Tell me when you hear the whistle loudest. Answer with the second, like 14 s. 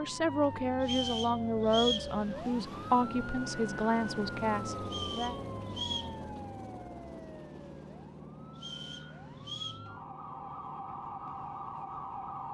2 s.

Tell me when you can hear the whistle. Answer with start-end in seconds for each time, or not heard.
0.8-2.1, 4.8-6.2, 8.6-9.8.